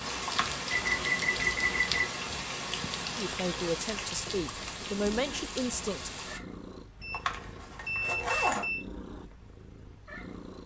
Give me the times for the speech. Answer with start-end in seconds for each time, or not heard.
3.1-6.2.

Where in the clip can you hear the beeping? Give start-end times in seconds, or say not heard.
0.7-2.2, 7.0-8.8.